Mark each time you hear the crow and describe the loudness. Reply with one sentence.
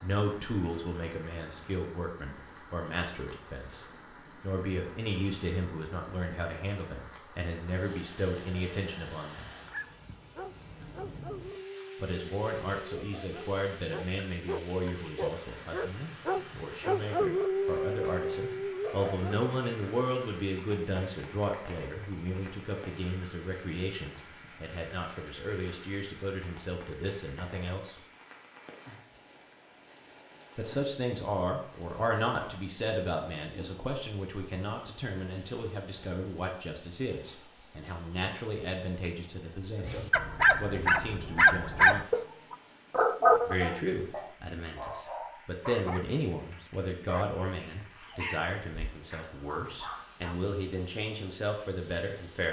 The crow can't be heard in this clip.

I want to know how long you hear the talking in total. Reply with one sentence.
You can hear the talking for 45 seconds altogether.